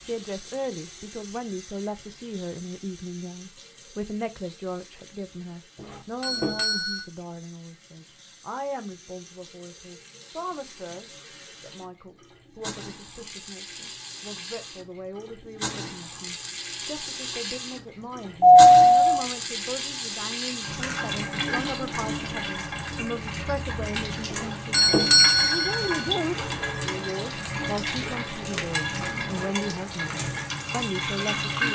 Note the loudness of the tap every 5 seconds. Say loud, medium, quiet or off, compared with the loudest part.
quiet, quiet, quiet, medium, loud, loud, loud.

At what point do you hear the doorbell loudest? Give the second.
19 s.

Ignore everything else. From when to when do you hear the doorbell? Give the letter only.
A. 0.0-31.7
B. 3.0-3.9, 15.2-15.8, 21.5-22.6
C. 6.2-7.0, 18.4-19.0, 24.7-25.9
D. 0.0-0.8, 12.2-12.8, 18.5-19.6
C.